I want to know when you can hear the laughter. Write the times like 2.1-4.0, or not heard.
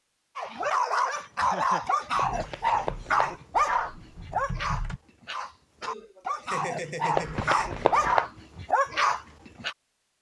1.4-2.1, 5.8-7.7.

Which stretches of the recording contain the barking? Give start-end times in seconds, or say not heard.
0.3-9.8.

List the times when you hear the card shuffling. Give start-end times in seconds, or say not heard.
2.1-3.4, 7.2-8.2.